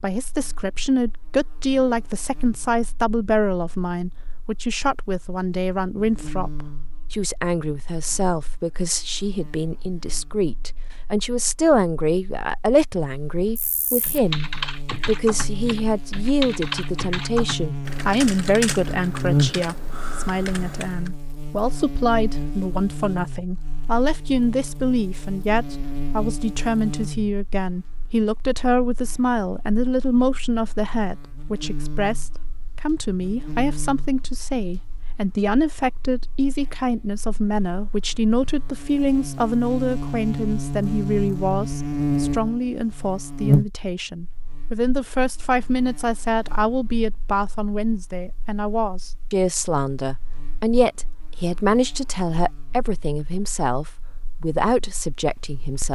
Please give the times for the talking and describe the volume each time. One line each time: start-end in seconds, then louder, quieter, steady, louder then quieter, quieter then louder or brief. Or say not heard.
0.0-55.9 steady.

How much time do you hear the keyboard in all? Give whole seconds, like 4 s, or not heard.
7 s.